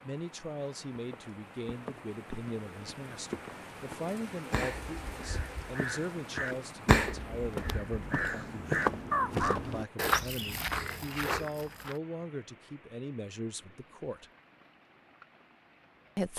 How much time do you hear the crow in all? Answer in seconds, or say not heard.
5 s.